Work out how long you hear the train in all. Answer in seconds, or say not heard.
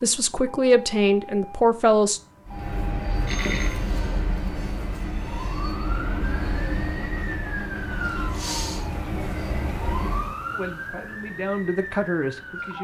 8 s.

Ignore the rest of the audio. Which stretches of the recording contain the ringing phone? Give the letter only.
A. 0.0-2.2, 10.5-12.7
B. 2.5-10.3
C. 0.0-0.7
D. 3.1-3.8
D.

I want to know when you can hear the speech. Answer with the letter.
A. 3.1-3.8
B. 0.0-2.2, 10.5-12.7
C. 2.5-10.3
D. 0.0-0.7
B.